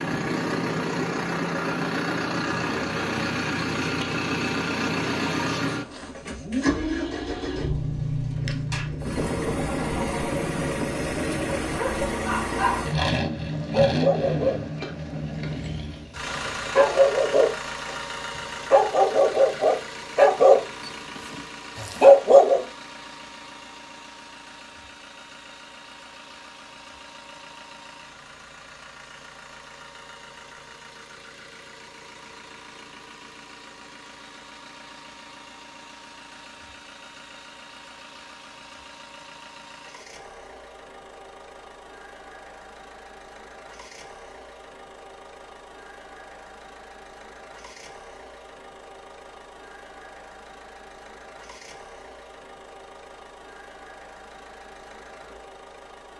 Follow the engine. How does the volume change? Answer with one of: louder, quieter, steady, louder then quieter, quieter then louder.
quieter.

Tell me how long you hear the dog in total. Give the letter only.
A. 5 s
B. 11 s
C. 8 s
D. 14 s
B.